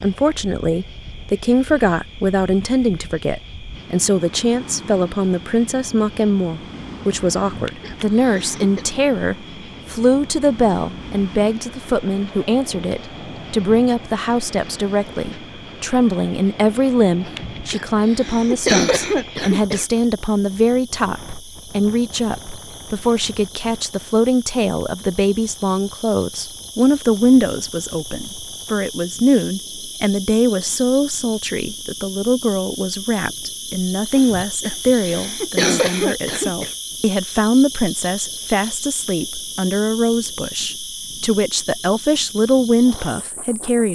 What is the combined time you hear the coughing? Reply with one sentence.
You can hear the coughing for 7 seconds altogether.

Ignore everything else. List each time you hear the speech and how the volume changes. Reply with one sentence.
The speech can be heard from 0.0 to 43.9 s, at a steady volume.